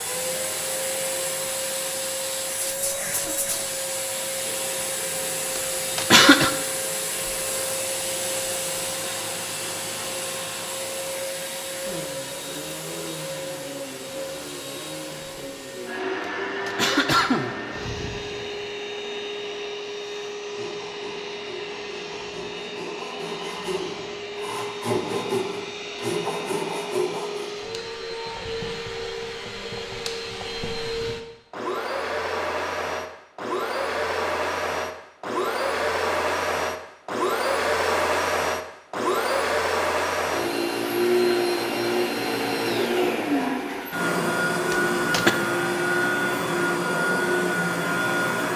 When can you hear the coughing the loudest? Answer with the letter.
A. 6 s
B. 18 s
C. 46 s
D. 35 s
A.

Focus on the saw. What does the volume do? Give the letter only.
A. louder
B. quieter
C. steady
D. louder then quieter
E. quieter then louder
A.